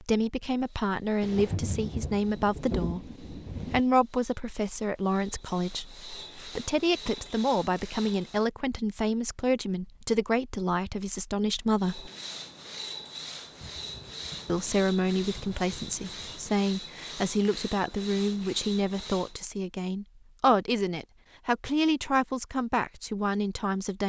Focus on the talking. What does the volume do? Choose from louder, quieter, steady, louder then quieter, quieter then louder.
steady.